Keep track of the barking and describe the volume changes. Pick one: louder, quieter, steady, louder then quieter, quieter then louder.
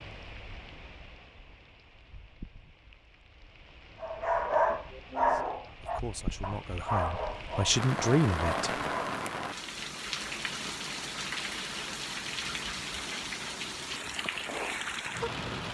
quieter.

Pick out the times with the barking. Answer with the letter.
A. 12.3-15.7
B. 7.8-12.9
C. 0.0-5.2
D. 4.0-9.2
D.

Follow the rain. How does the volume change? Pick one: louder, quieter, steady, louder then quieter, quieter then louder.
louder.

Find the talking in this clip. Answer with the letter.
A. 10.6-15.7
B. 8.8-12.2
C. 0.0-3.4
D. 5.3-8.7
D.